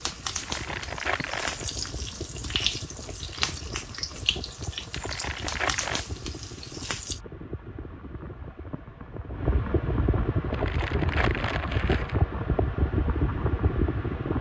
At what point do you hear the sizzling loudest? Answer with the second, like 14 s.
3 s.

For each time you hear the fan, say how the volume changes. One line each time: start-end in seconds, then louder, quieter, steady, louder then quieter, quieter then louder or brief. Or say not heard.
0.0-14.3 louder.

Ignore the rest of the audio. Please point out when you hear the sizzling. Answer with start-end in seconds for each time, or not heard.
0.0-7.2.